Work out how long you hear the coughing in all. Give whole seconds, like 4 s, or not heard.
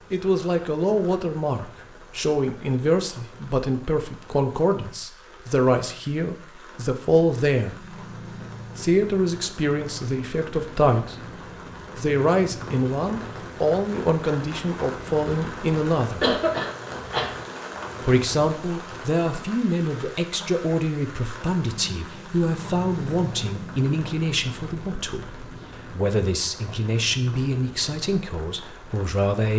2 s.